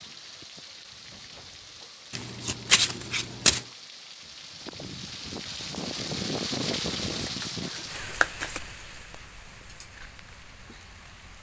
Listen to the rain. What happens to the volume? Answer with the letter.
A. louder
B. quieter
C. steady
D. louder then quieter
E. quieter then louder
D.